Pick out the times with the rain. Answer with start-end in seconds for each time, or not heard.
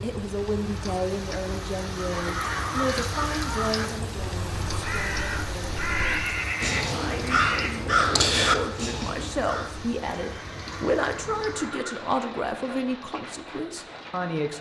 0.0-14.5.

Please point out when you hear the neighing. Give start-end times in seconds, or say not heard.
2.1-3.0, 5.9-7.8, 10.1-12.0.